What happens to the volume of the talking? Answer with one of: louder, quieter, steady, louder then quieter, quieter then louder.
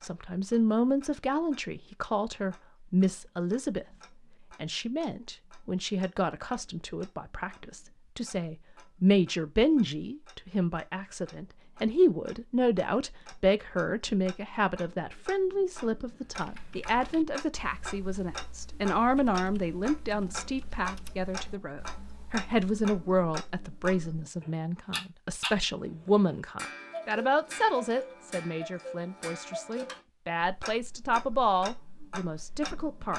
steady.